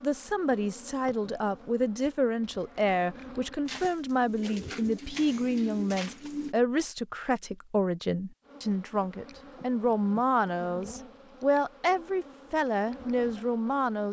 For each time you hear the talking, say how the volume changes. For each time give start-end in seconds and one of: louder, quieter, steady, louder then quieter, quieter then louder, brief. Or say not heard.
0.0-14.0 steady.